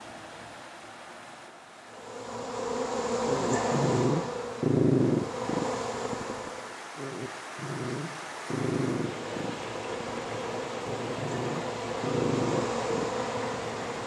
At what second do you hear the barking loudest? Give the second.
5 s.